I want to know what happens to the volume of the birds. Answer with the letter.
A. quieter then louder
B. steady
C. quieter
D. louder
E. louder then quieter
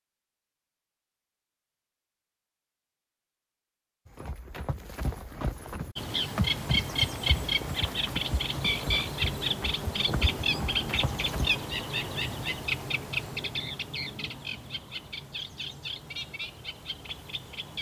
C.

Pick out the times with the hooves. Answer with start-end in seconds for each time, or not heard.
4.0-11.6.